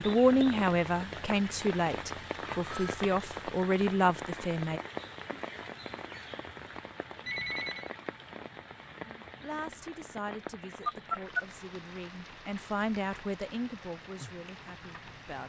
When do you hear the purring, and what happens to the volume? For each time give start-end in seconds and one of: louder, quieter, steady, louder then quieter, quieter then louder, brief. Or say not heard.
not heard.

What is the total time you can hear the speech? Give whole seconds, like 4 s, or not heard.
11 s.